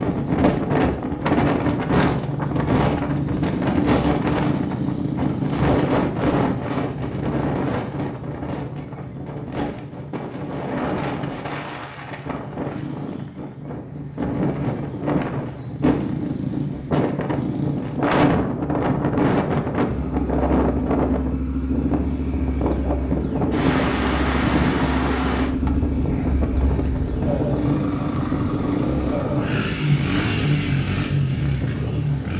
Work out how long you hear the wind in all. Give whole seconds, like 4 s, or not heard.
32 s.